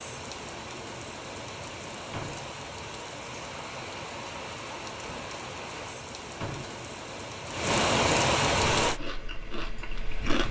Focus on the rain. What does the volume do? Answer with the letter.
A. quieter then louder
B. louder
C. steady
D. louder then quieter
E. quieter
B.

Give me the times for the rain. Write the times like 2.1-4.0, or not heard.
0.0-9.0.